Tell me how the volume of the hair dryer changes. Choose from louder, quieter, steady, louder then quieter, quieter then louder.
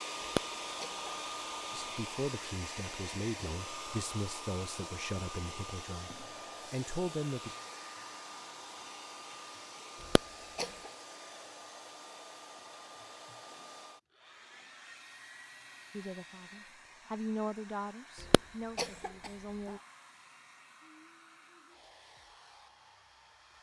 quieter.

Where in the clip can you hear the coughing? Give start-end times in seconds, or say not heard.
0.3-1.9, 10.2-10.7, 18.3-19.3.